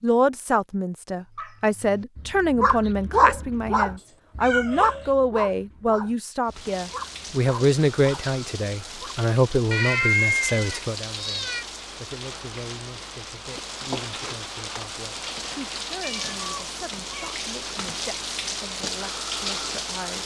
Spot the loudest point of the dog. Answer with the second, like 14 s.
3 s.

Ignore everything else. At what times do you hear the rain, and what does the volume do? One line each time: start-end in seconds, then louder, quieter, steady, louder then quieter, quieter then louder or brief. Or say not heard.
6.5-20.2 louder.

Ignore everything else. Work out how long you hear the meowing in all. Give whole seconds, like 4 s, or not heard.
4 s.